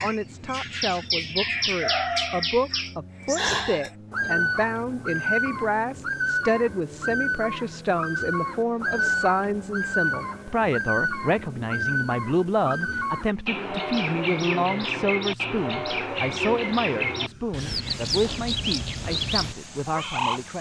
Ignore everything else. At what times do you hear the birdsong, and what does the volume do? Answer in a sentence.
The birdsong can be heard from 0.0 to 20.4 s, at a steady volume.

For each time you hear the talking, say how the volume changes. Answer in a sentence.
The talking can be heard from 0.0 to 20.5 s, at a steady volume.